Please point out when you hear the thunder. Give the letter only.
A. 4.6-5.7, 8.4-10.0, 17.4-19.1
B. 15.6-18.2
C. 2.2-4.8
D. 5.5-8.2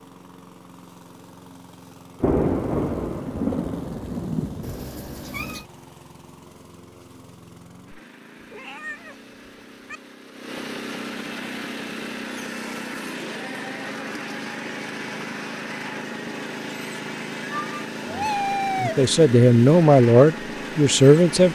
C.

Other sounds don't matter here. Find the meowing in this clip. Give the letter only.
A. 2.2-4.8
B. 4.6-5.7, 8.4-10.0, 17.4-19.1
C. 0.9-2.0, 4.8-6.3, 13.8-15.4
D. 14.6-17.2
B.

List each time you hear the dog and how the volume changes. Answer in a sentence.
The dog can't be heard in this clip.